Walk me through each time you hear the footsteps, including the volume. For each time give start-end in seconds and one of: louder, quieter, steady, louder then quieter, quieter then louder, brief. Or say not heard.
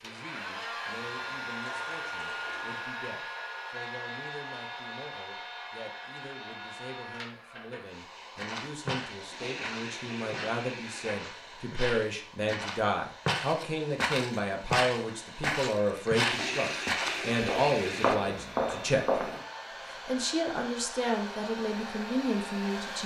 8.3-19.4 louder.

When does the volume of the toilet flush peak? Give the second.
17 s.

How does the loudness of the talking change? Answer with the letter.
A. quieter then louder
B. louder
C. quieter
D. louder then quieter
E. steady
B.